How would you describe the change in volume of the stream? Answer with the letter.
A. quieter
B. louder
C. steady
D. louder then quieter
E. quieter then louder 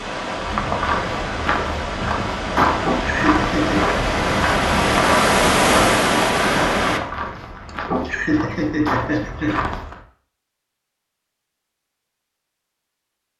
B.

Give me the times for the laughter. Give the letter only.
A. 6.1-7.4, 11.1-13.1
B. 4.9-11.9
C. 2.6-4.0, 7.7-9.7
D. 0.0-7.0
C.